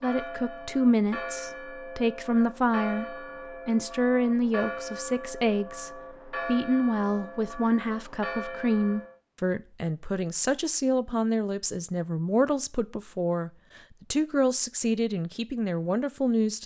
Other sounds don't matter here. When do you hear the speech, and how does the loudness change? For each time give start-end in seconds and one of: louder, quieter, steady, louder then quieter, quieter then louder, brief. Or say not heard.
0.0-16.6 steady.